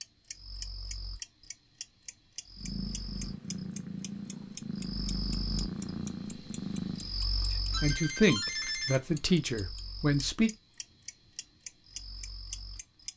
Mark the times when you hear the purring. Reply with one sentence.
The purring can be heard from 2.5 to 7.2 s.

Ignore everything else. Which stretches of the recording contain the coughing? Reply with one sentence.
The coughing can't be heard in this clip.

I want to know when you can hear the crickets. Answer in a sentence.
The crickets can be heard from 0.0 to 13.1 s.